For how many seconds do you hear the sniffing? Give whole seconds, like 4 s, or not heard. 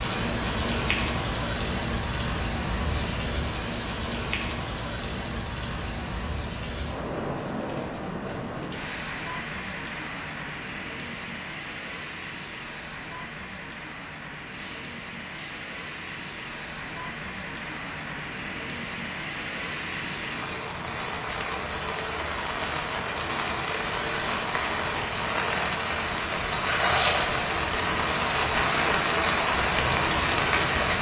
3 s.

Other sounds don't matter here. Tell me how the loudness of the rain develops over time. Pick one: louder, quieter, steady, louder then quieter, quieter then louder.
quieter then louder.